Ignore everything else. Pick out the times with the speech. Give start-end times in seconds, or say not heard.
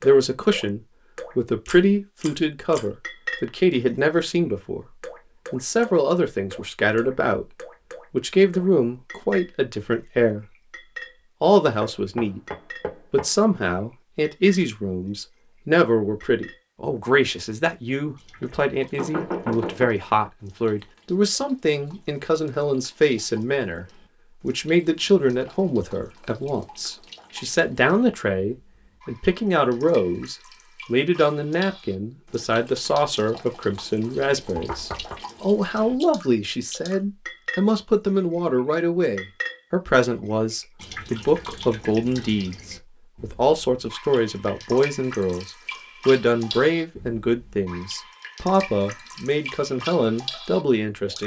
0.0-10.6, 11.4-51.2.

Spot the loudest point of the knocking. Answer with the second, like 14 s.
19 s.